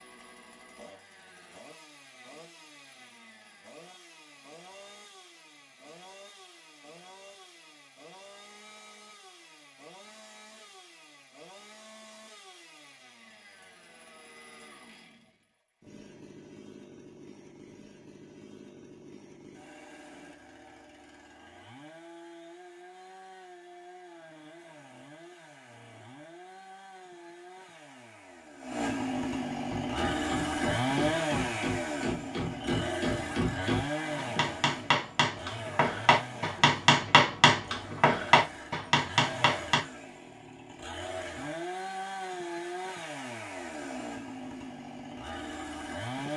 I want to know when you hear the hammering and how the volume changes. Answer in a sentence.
You can hear the hammering from 29.7 to 39.9 s, getting louder.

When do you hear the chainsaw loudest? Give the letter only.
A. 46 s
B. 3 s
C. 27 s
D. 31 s
D.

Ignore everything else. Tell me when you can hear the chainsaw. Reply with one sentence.
You can hear the chainsaw from 0.0 to 46.3 s.